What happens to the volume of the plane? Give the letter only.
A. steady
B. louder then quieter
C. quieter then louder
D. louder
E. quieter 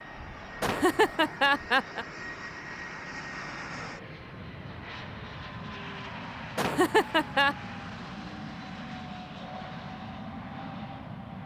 A.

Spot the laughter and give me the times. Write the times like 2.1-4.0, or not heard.
0.6-2.0, 6.5-7.5.